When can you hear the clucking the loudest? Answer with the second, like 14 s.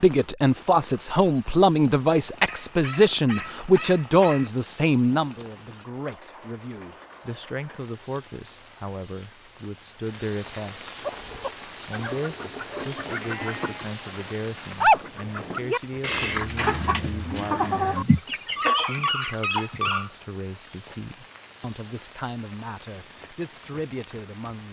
15 s.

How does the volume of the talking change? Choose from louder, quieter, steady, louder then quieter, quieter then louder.
quieter.